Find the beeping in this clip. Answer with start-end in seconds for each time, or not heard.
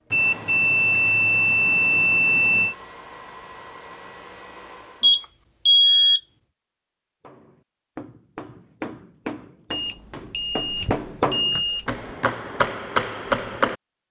0.1-2.8, 5.0-6.2, 9.7-11.9.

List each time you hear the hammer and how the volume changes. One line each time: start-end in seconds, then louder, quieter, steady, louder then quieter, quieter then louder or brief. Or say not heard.
7.2-13.8 louder.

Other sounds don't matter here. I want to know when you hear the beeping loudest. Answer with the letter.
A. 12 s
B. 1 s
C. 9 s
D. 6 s
D.